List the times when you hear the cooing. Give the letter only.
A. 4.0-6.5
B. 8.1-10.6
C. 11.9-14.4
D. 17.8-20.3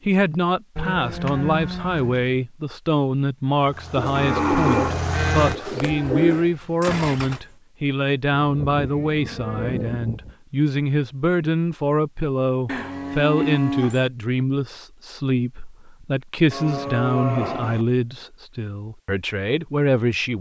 A.